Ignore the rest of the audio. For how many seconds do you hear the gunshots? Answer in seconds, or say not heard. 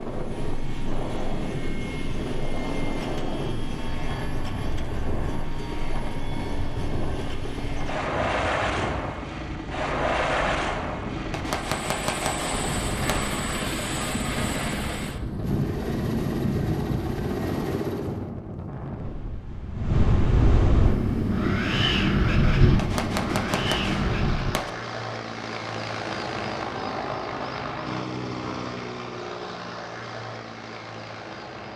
4 s.